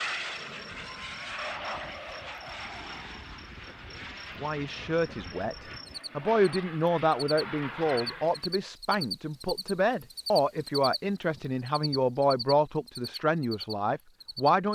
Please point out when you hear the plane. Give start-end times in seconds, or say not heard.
0.0-8.6.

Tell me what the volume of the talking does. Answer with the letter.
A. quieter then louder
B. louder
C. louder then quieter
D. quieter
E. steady
E.